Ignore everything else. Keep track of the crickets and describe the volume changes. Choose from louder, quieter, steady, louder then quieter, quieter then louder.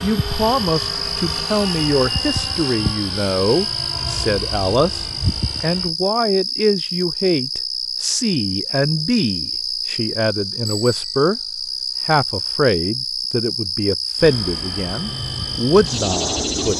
steady.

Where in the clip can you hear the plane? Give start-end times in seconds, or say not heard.
0.0-5.9, 14.2-16.7.